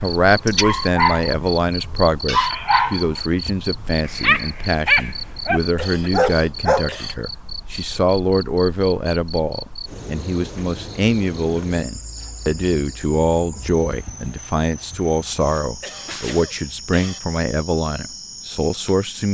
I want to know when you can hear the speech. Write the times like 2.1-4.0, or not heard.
0.0-19.2.